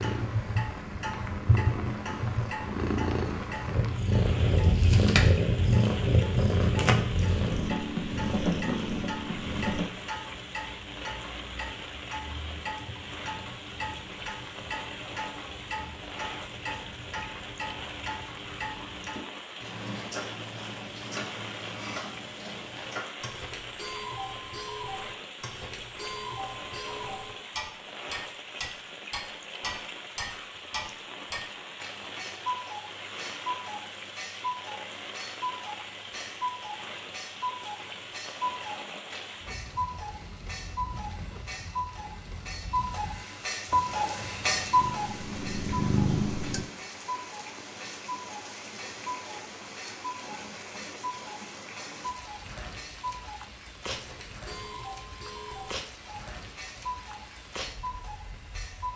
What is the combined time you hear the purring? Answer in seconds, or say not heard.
13 s.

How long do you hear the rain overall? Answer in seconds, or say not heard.
59 s.